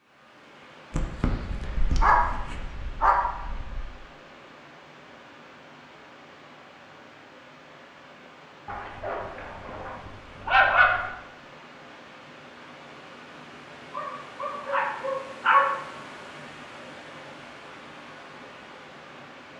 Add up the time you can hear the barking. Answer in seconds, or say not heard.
7 s.